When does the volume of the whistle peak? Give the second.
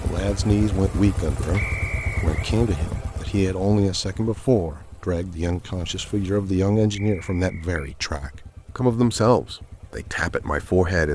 2 s.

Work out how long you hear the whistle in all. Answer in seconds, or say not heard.
2 s.